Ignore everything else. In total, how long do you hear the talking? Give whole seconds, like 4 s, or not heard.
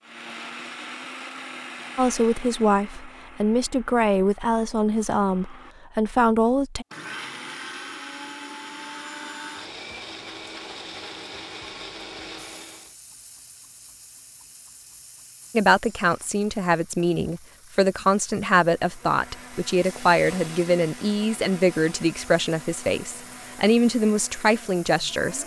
15 s.